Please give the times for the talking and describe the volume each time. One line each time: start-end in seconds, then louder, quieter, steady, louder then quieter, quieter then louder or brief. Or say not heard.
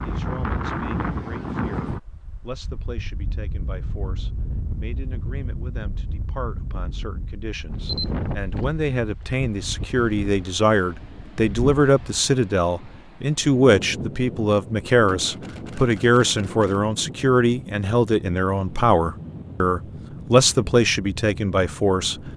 0.0-22.2 louder.